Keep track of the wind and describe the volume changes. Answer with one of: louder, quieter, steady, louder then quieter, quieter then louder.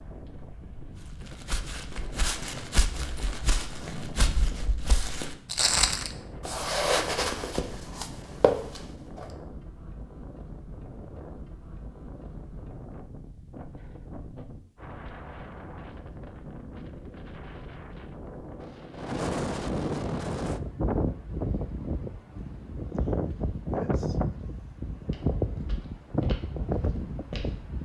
louder.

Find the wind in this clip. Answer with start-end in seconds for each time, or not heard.
0.0-27.8.